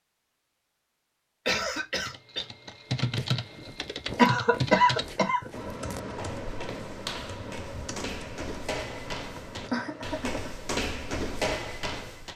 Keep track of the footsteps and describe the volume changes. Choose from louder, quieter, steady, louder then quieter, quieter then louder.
louder.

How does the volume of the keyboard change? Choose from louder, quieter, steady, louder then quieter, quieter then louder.
quieter.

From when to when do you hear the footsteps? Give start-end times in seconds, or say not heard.
3.0-12.3.